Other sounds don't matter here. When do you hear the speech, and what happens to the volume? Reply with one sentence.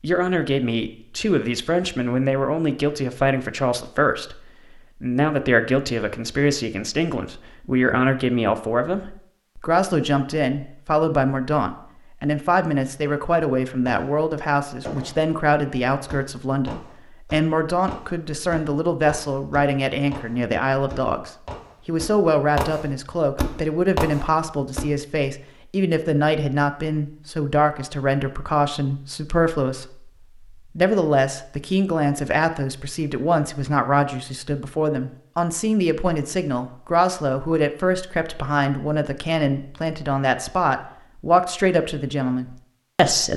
The speech can be heard from 0.0 to 43.3 s, at a steady volume.